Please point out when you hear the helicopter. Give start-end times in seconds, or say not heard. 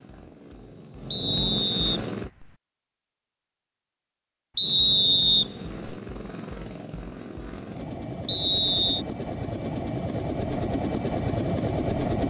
0.0-2.3, 4.6-12.2.